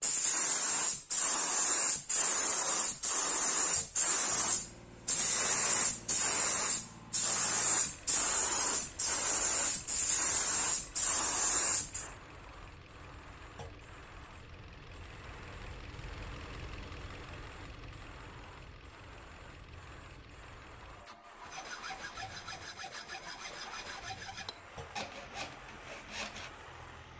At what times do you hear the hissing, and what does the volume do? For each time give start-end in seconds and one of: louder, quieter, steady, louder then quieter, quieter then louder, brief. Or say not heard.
0.0-27.1 quieter.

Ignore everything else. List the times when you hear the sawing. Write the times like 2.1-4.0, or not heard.
21.4-26.5.